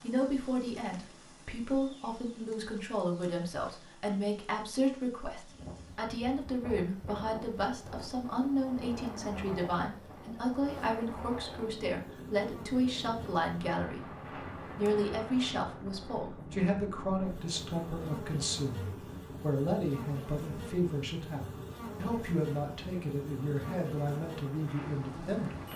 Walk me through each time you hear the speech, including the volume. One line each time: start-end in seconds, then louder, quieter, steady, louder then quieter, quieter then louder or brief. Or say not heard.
0.0-25.7 steady.